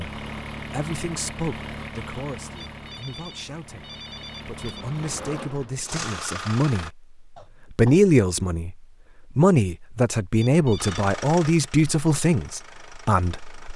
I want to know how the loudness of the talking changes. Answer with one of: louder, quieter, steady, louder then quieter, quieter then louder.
louder.